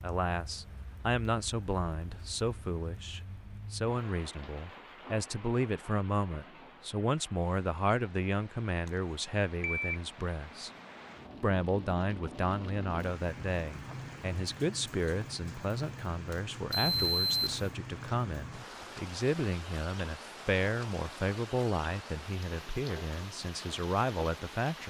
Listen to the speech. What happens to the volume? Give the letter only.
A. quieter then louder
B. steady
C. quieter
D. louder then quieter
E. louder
B.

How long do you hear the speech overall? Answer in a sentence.
The speech can be heard for 24 seconds in total.